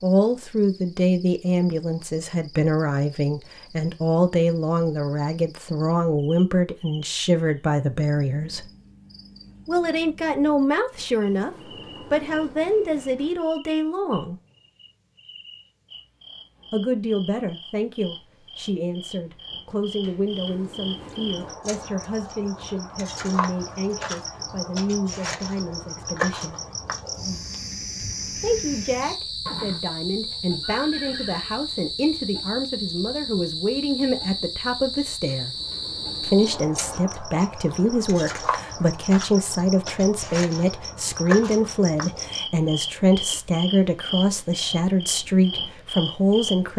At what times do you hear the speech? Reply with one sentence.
You can hear the speech from 0.0 to 8.7 s, from 9.7 to 14.3 s, from 16.7 to 26.6 s, from 28.4 to 35.5 s and from 36.2 to 46.7 s.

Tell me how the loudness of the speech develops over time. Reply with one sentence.
The loudness of the speech goes down, then up.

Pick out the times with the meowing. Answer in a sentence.
The meowing can't be heard in this clip.